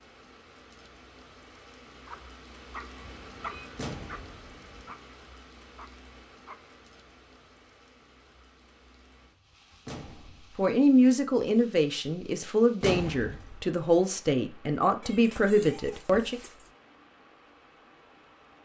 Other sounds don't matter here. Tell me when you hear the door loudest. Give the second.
13 s.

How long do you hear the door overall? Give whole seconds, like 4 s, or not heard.
2 s.